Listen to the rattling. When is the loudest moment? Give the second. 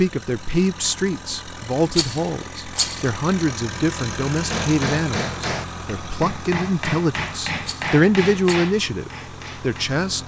3 s.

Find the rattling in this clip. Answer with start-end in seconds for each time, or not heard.
1.9-3.1, 7.6-8.6.